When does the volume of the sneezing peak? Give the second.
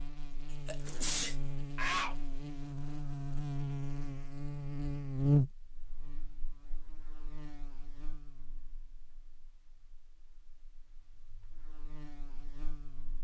2 s.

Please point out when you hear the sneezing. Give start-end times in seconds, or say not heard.
0.7-2.1.